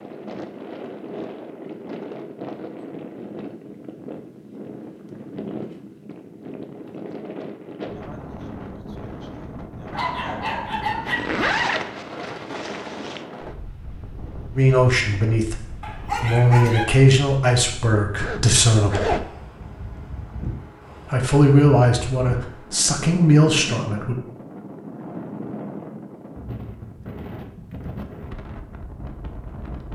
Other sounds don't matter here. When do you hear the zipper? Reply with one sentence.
You can hear the zipper from 11.1 to 13.2 s and from 18.1 to 19.3 s.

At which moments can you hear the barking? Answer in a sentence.
The barking can be heard from 9.9 to 11.4 s and from 15.8 to 16.9 s.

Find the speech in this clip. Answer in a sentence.
The speech can be heard from 14.6 to 19.2 s and from 21.1 to 24.1 s.